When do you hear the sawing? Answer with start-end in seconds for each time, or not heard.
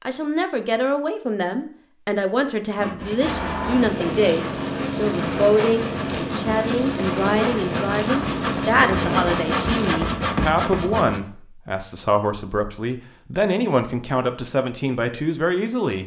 2.8-11.2.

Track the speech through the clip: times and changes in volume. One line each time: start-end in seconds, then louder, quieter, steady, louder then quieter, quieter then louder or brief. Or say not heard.
0.0-16.0 steady.